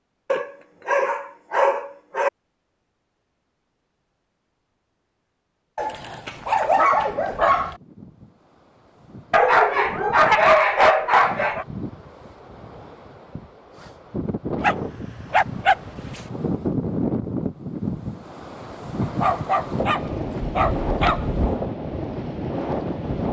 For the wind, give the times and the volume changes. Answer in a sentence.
The wind can be heard from 6.9 to 23.2 s, getting louder.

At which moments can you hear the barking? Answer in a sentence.
The barking can be heard from 0.3 to 2.3 s, from 5.8 to 7.8 s, from 9.3 to 11.7 s, from 14.6 to 16.2 s and from 19.0 to 21.6 s.